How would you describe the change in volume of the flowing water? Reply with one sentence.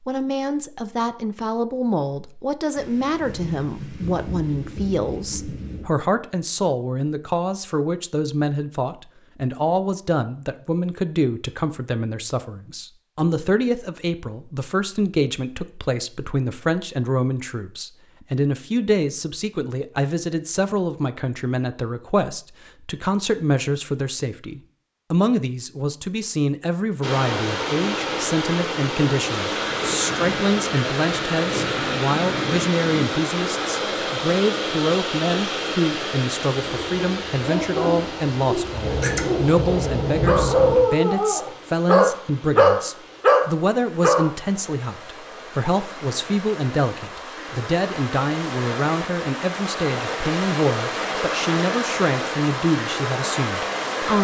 The volume of the flowing water goes down, then up.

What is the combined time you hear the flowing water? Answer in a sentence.
You can hear the flowing water for 27 seconds altogether.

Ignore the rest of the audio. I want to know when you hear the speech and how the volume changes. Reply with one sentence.
You can hear the speech from 0.0 to 54.1 s, at a steady volume.